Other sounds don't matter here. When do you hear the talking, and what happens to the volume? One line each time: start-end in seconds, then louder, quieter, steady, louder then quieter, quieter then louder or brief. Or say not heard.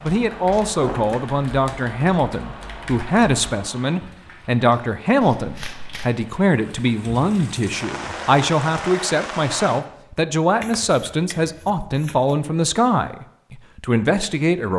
0.0-14.7 steady.